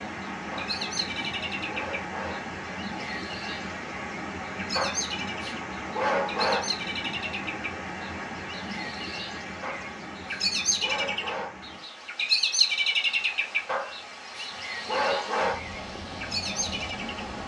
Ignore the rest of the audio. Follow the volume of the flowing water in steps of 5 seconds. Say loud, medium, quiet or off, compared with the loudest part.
loud, loud, medium, loud.